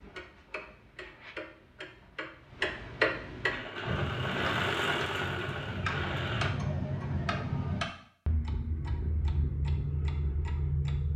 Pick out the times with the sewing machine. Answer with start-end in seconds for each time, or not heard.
3.5-6.5.